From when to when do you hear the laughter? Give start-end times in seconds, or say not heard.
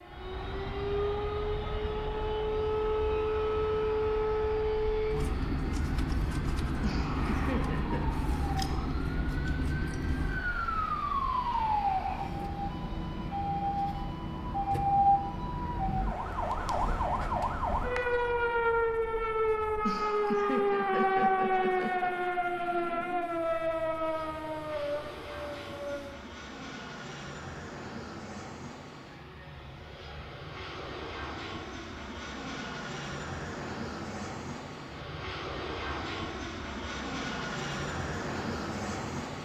6.8-8.1, 19.8-22.1.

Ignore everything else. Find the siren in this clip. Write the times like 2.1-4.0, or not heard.
0.0-26.1.